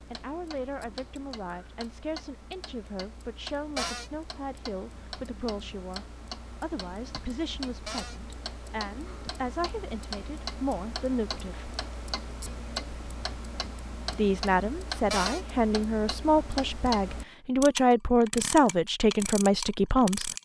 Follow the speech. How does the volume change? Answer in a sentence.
The volume of the speech goes up.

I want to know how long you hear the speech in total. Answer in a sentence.
You can hear the speech for 18 seconds altogether.